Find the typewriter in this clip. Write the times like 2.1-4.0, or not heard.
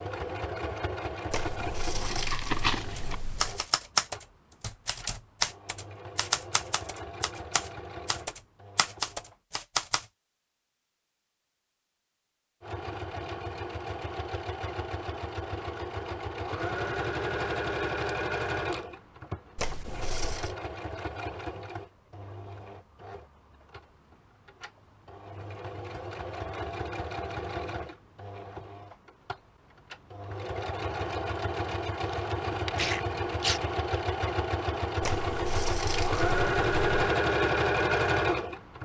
3.0-10.1.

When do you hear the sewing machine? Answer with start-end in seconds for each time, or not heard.
0.0-9.3, 12.6-38.8.